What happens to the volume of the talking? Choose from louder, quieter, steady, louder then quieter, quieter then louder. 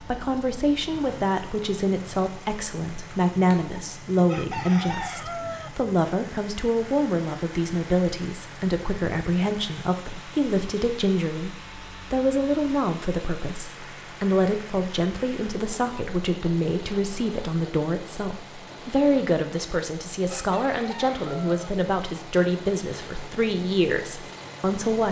steady.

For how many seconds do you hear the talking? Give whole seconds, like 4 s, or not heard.
25 s.